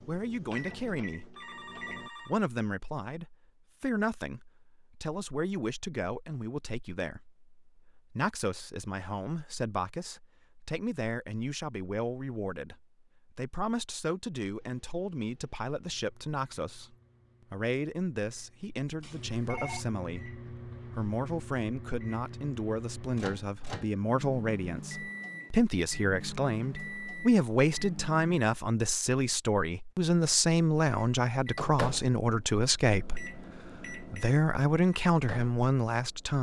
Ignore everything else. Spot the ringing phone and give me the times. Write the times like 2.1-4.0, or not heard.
1.4-2.4, 19.0-19.9.